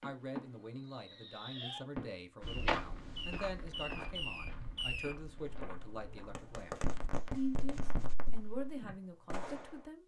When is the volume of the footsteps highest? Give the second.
3 s.